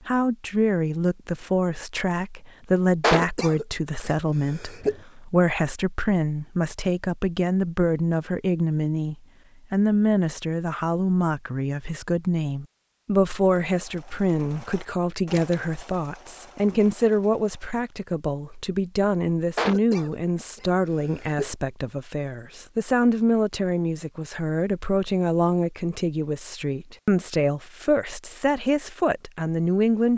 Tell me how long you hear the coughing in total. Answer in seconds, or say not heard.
4 s.